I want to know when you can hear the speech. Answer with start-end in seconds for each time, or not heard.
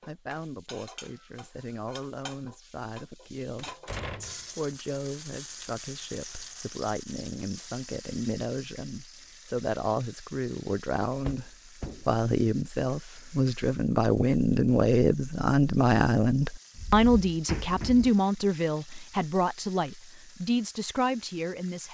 0.0-21.9.